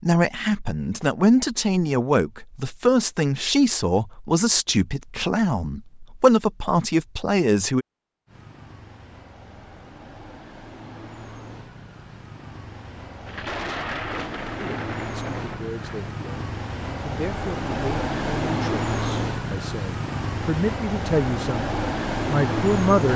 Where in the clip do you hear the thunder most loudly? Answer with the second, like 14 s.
14 s.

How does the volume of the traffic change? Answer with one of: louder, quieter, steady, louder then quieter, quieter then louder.
louder.